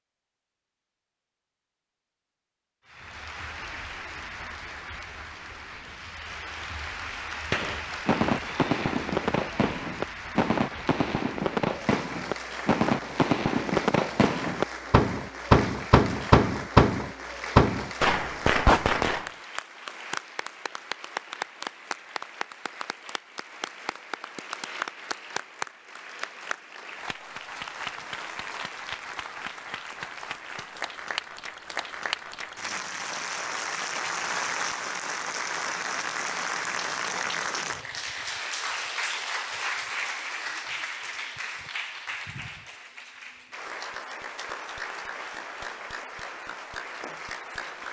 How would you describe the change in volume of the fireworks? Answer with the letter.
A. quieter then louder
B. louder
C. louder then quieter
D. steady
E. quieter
B.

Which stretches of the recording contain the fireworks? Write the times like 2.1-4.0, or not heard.
7.5-19.3.